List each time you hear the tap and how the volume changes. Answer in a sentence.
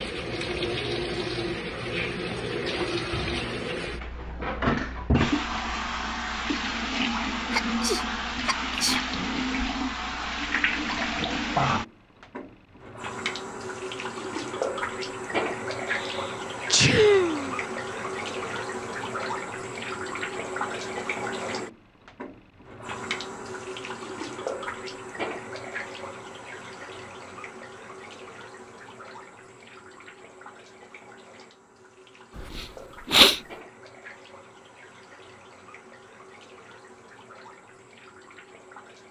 You can hear the tap from 0.0 to 39.0 s, getting quieter.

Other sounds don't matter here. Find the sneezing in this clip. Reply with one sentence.
You can hear the sneezing from 7.5 to 9.0 s, from 15.9 to 17.6 s and from 32.4 to 33.4 s.